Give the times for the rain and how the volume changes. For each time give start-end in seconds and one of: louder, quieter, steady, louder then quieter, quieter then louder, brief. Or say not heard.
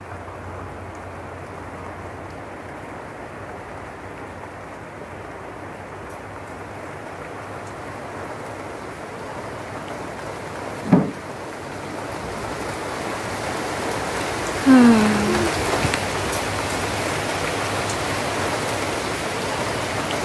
0.0-20.2 louder.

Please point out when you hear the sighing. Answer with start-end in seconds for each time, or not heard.
14.7-15.9.